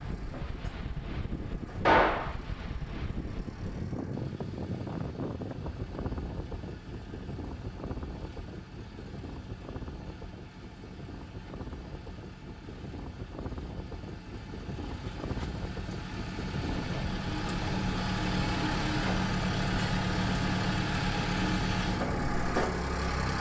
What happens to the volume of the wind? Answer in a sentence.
The loudness of the wind goes down, then up.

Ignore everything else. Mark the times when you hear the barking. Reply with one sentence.
The barking can't be heard in this clip.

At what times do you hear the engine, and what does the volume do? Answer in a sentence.
You can hear the engine from 0.0 to 23.3 s, getting louder.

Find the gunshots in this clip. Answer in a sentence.
The gunshots can be heard from 1.9 to 2.4 s.